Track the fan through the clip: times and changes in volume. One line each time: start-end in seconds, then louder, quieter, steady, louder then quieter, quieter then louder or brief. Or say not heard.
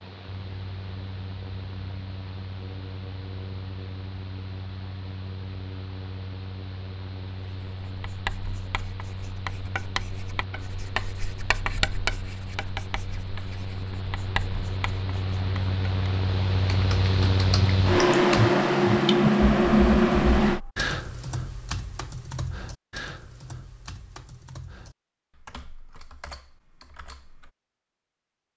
0.0-20.6 louder.